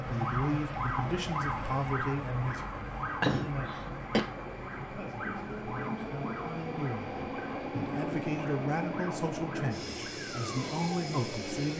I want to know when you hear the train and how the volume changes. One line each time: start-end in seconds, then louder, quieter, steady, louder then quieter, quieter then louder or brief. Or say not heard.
0.0-11.7 louder.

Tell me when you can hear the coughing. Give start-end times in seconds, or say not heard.
3.2-4.2.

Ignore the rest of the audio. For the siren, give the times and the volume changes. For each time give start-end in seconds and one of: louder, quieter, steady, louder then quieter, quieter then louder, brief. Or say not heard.
0.0-11.7 quieter.